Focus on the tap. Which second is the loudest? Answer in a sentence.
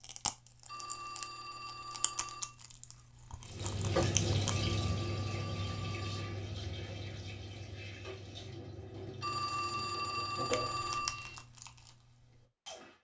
The volume of the tap peaks at 4 seconds.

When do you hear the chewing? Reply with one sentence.
The chewing can be heard from 0.0 to 4.7 s and from 10.5 to 12.9 s.